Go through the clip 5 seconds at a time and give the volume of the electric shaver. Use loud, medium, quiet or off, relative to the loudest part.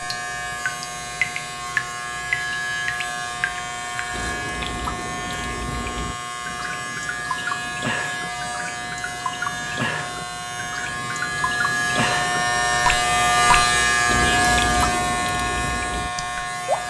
medium, medium, loud, medium.